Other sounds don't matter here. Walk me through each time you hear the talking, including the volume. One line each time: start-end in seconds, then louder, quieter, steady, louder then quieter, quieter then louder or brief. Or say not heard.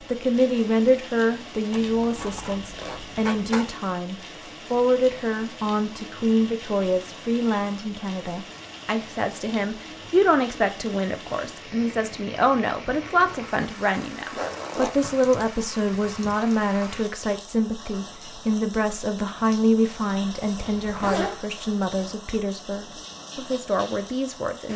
0.1-24.7 steady.